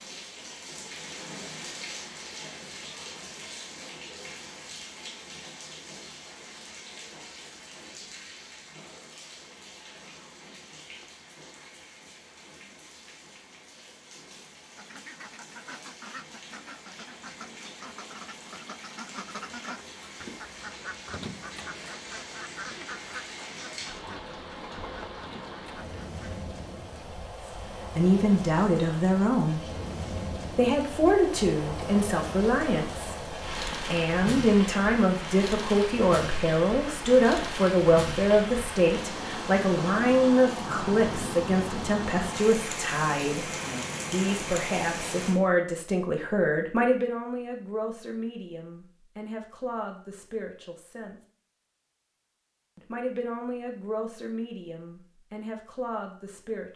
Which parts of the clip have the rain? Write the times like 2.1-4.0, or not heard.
0.0-45.4.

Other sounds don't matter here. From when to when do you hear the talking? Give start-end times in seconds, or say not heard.
27.9-29.6, 30.6-43.5, 44.1-51.2, 52.8-56.7.